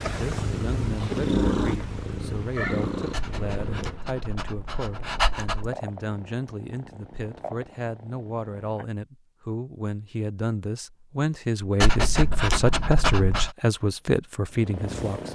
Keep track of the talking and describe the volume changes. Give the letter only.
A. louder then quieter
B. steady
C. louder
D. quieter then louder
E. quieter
C.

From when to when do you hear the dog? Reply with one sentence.
You can hear the dog from 3.1 to 5.7 s and from 11.8 to 13.5 s.